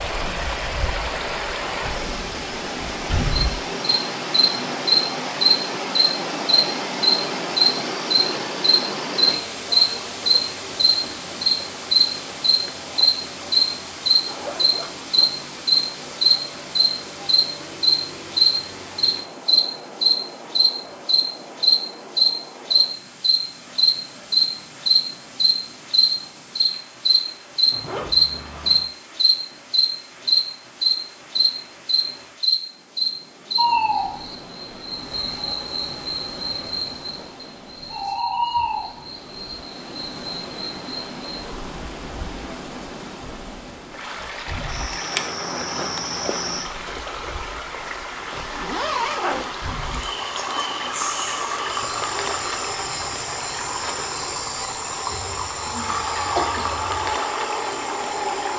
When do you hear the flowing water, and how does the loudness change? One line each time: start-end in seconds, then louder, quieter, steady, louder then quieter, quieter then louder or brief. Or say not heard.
0.0-58.5 quieter then louder.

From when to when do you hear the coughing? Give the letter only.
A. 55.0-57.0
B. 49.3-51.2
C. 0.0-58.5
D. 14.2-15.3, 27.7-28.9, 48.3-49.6
A.